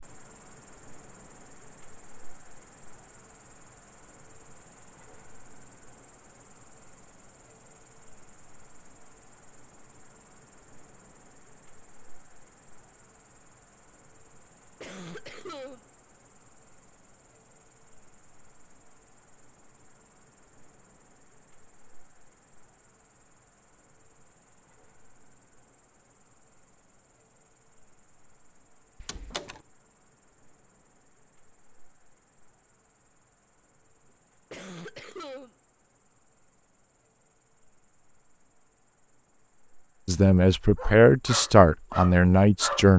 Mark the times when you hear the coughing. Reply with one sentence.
The coughing can be heard from 14.8 to 15.8 s and from 34.5 to 35.5 s.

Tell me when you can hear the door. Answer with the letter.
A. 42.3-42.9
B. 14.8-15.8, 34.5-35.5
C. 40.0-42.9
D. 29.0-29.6
D.